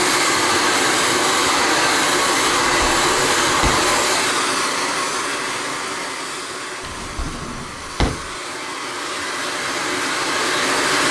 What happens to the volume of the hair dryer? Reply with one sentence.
The loudness of the hair dryer goes down, then up.